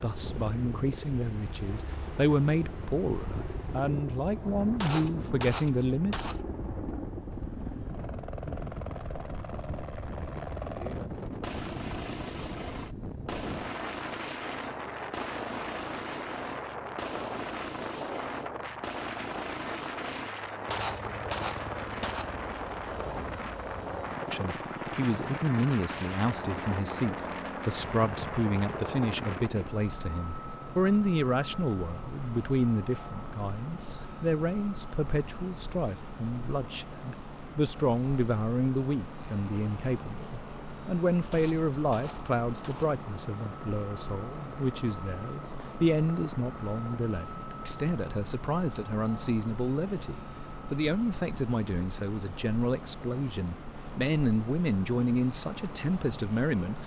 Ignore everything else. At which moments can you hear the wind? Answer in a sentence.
You can hear the wind from 0.1 to 29.5 s.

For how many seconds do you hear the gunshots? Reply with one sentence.
The gunshots can be heard for 5 seconds in total.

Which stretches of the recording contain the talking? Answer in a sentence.
You can hear the talking from 0.0 to 6.2 s and from 24.3 to 56.8 s.